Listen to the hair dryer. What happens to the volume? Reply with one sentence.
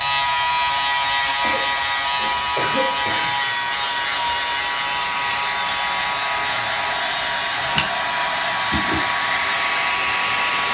The volume of the hair dryer goes up.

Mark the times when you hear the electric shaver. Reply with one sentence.
You can hear the electric shaver from 0.0 to 10.4 s.